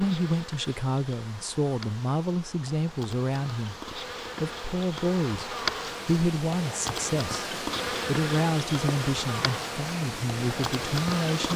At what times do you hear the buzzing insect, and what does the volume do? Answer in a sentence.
The buzzing insect can be heard from 0.0 to 11.5 s, getting louder.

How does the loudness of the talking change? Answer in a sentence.
The volume of the talking stays about the same.